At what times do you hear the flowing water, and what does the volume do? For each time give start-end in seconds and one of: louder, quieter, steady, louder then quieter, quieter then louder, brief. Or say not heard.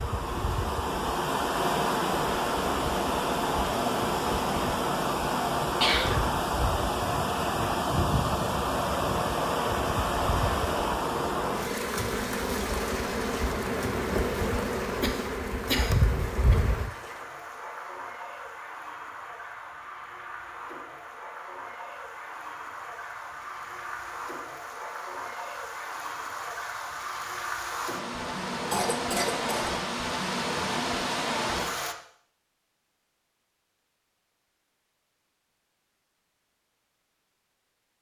0.0-31.9 quieter then louder.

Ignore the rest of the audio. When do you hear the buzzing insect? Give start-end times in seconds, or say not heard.
0.0-16.9.